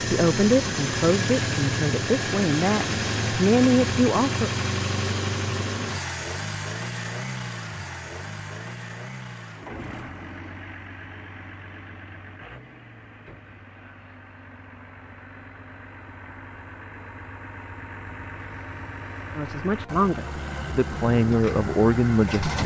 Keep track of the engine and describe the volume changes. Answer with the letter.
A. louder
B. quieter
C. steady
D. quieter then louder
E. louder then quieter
D.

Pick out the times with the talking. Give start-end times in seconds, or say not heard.
0.1-4.5, 19.4-22.6.